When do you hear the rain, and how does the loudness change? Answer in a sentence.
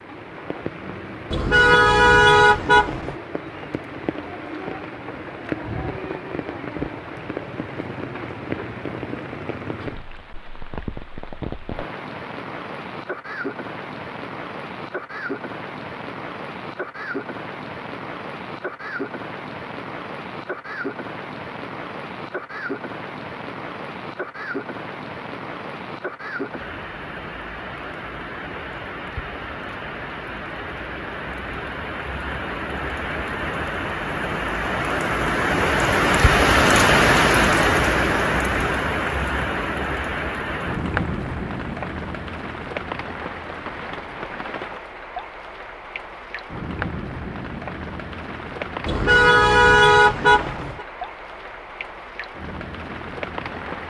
You can hear the rain from 0.0 to 53.8 s, getting louder then quieter.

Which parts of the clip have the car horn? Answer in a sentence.
The car horn can be heard from 1.3 to 3.1 s and from 48.9 to 50.9 s.